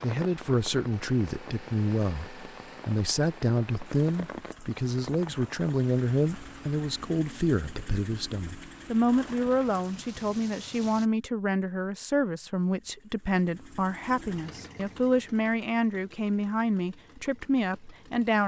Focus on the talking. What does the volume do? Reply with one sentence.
The volume of the talking stays about the same.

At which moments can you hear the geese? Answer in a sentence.
The geese can't be heard in this clip.